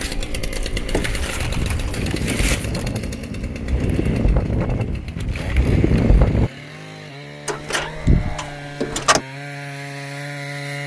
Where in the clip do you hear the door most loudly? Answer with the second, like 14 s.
8 s.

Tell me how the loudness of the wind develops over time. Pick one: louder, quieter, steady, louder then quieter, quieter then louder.
louder.